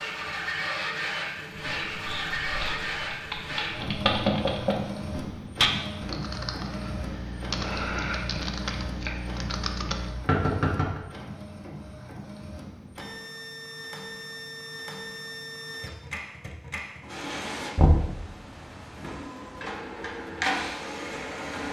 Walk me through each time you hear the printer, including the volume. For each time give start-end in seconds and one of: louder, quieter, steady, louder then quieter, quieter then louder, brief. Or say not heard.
0.0-21.6 quieter then louder.